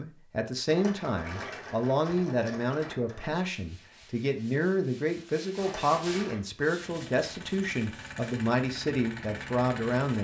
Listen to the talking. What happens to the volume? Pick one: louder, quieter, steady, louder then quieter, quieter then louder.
steady.